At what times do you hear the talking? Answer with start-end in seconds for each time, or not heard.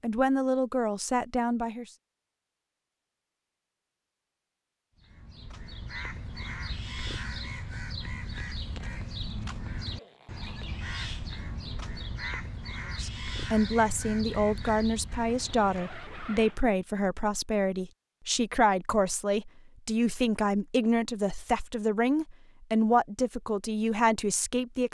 0.0-1.9, 13.0-24.9.